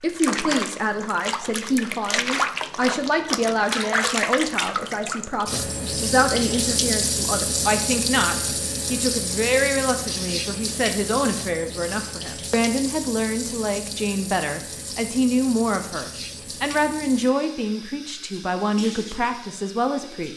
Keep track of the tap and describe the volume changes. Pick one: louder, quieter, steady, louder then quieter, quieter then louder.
quieter.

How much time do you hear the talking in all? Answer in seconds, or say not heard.
20 s.